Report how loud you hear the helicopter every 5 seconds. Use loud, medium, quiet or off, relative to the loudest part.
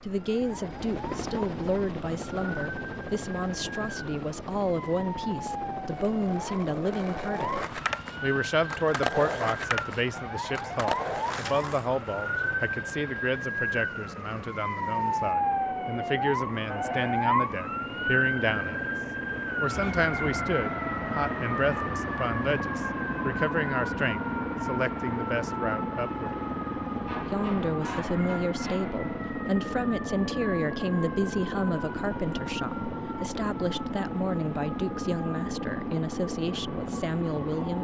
medium, medium, quiet, medium, loud, loud, loud, loud.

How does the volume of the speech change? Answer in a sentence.
The volume of the speech stays about the same.